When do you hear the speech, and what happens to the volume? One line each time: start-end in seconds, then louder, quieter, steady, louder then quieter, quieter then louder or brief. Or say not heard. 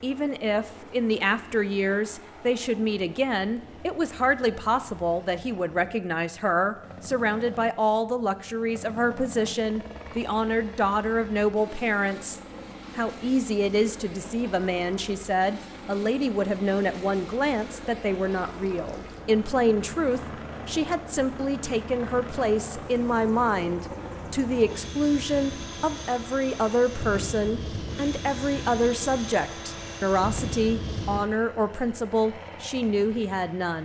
0.0-33.8 steady.